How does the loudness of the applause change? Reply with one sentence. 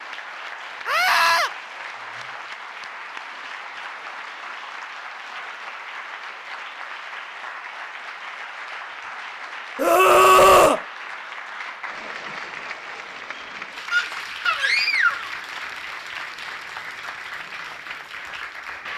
The loudness of the applause stays about the same.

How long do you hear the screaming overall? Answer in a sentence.
You can hear the screaming for 3 seconds altogether.